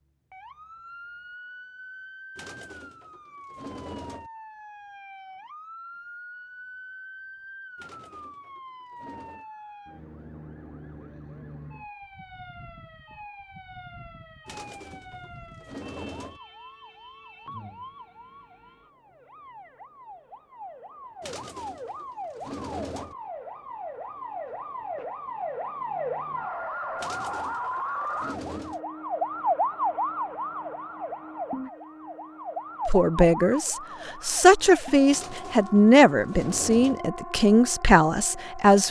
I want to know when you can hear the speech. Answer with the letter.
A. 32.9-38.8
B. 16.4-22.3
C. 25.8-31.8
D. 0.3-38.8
A.